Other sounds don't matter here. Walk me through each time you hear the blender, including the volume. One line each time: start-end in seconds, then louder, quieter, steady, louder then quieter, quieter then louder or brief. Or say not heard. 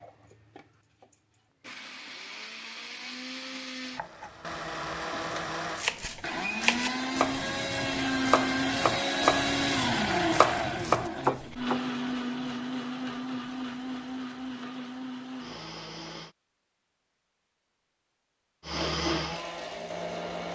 0.0-16.4 louder then quieter
18.6-20.4 brief.